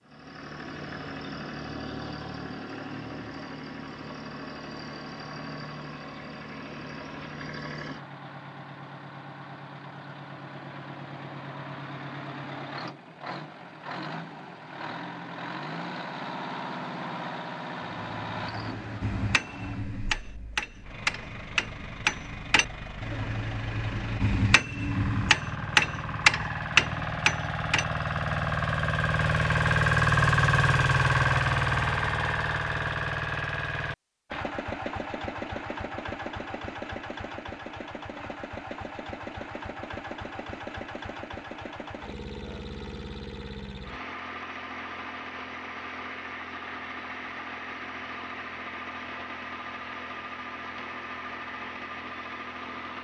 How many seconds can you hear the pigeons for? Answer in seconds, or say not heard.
not heard.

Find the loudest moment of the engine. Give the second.
30 s.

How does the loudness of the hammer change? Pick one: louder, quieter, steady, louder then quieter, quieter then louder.
louder.